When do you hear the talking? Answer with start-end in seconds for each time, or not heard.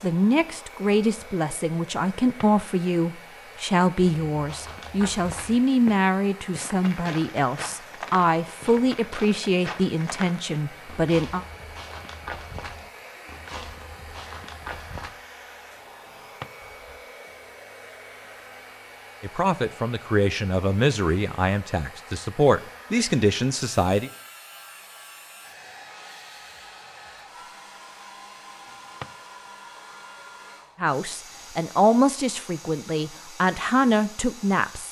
0.0-11.4, 19.2-24.1, 30.8-34.8.